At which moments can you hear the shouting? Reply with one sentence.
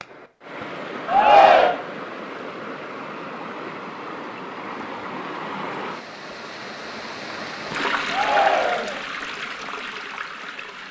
The shouting can be heard from 1.1 to 1.8 s and from 8.1 to 9.0 s.